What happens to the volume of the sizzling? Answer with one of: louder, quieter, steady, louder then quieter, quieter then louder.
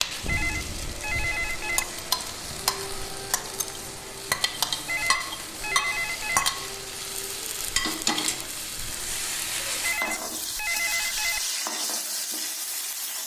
steady.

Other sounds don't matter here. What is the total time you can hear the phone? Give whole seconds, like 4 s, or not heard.
5 s.